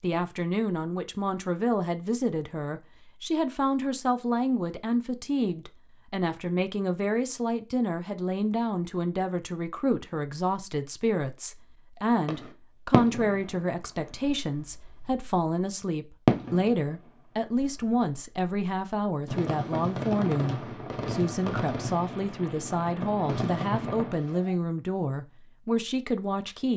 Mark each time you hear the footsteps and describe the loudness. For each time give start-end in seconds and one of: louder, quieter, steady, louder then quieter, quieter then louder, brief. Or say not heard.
not heard.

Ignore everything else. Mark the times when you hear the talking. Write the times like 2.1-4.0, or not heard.
0.0-26.7.